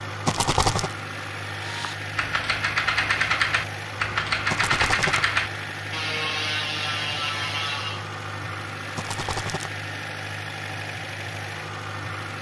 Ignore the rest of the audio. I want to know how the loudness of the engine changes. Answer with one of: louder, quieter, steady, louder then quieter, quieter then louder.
steady.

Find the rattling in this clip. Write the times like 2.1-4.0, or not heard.
0.2-0.9, 4.5-5.2, 8.9-9.7.